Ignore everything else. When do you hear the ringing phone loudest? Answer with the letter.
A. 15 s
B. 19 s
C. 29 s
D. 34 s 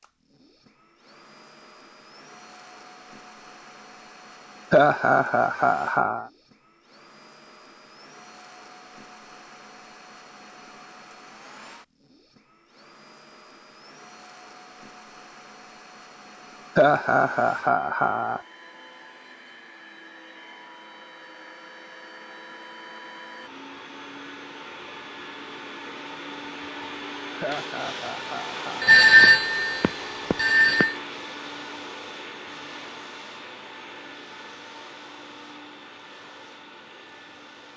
C.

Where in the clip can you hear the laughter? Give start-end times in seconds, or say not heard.
4.7-6.2, 16.8-18.4, 27.4-28.9.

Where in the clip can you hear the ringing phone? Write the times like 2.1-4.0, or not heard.
28.8-30.9.